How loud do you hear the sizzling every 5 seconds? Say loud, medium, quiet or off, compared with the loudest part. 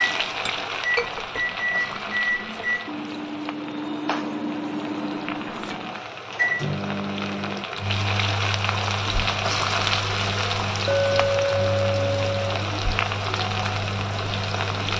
medium, loud, loud.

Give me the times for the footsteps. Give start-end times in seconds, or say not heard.
not heard.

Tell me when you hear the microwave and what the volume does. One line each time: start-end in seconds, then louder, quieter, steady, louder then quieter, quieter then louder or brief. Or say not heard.
0.0-14.9 quieter.